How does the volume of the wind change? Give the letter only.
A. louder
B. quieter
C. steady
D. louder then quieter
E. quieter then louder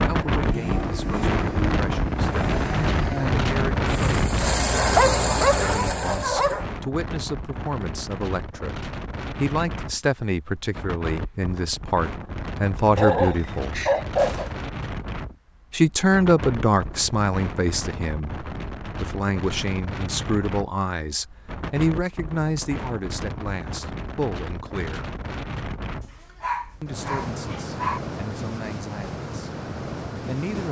B.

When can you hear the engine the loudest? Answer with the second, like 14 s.
5 s.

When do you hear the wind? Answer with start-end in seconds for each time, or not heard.
0.0-30.6.